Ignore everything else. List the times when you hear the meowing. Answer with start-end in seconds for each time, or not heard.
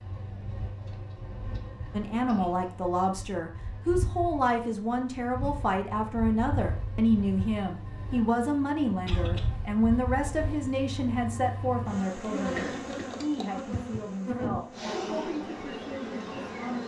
not heard.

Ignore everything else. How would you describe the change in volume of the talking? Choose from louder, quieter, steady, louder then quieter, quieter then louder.
quieter.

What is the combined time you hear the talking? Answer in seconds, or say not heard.
15 s.